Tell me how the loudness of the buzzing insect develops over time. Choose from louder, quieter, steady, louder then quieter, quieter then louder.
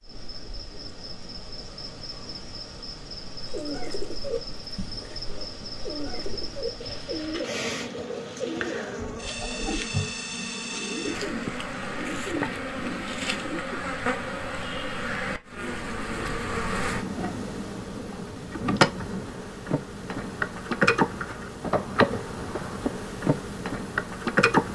louder.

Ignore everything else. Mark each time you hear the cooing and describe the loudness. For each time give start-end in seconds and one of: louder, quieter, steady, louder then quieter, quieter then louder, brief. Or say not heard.
3.4-13.8 steady.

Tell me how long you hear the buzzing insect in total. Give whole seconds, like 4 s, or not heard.
25 s.